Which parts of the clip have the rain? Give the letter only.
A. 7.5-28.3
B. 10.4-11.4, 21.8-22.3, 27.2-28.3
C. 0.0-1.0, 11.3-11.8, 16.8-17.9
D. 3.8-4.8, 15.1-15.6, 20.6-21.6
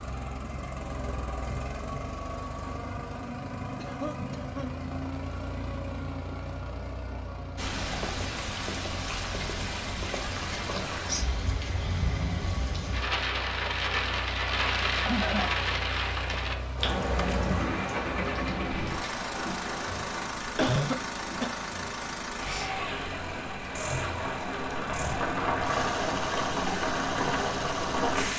A.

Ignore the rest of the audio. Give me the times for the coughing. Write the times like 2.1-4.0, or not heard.
3.8-4.8, 15.1-15.6, 20.6-21.6.